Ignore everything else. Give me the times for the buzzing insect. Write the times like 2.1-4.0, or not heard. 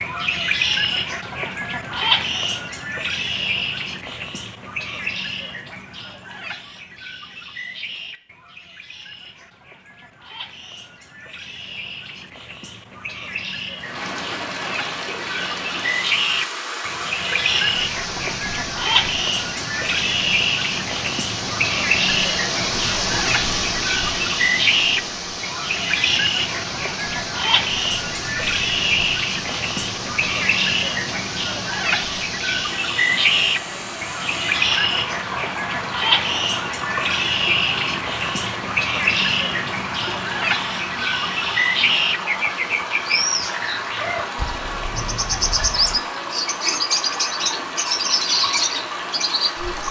not heard.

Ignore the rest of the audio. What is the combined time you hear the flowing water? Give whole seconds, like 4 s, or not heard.
36 s.